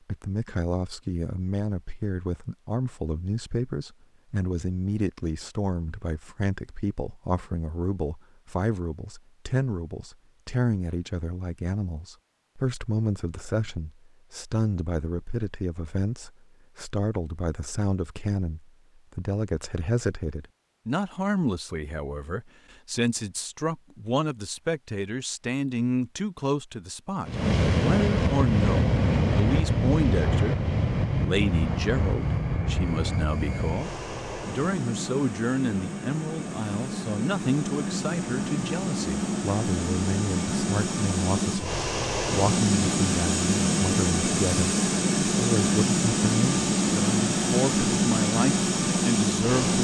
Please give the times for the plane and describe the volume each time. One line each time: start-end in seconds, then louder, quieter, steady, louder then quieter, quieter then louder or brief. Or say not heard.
27.2-49.8 quieter then louder.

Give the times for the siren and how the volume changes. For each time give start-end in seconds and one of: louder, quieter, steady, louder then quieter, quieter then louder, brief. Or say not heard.
not heard.